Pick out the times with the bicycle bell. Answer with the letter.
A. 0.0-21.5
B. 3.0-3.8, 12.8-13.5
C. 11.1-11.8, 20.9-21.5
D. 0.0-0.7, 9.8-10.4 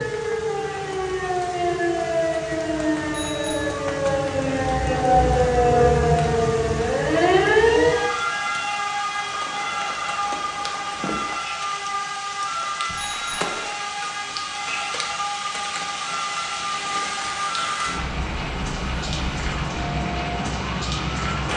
B.